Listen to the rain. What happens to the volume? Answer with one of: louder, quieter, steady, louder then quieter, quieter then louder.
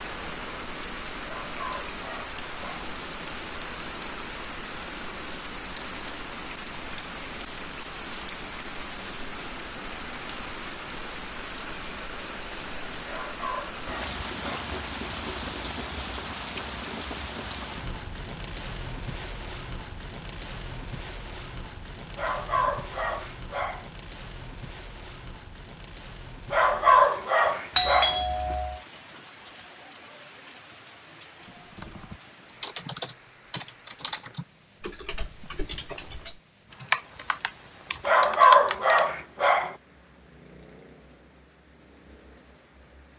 quieter.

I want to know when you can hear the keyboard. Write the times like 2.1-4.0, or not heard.
31.4-39.1.